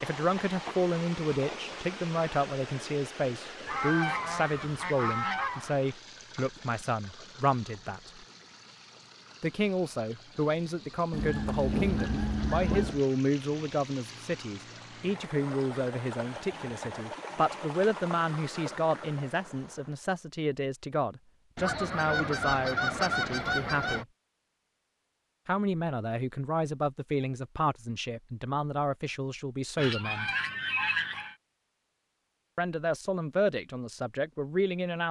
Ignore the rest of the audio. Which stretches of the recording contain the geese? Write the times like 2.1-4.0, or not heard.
3.6-5.8, 11.1-13.0, 21.6-24.1, 29.8-31.4.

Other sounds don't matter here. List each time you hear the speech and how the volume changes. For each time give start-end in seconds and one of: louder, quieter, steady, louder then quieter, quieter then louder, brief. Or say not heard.
0.0-8.1 steady
9.4-24.1 steady
25.4-30.3 steady
32.5-35.0 brief.